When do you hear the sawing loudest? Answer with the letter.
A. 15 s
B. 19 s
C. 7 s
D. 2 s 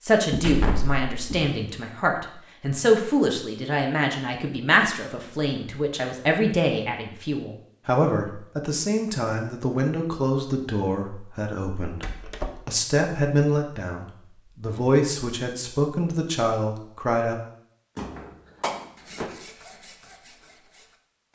B.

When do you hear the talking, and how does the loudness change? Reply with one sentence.
You can hear the talking from 0.0 to 17.4 s, at a steady volume.